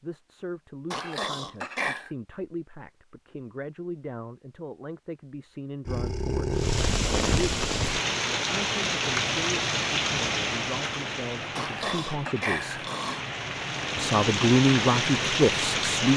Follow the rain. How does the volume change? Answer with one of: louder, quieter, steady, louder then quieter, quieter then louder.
quieter then louder.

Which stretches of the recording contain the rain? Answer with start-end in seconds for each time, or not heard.
6.5-16.1.